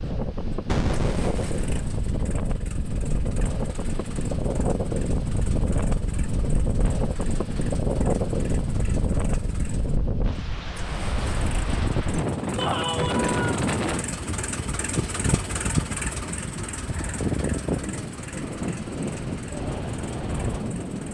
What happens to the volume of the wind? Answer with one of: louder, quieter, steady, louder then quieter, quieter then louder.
steady.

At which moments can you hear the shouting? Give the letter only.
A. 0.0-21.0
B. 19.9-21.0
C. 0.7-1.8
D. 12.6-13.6
D.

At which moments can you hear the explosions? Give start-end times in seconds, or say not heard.
0.7-1.8.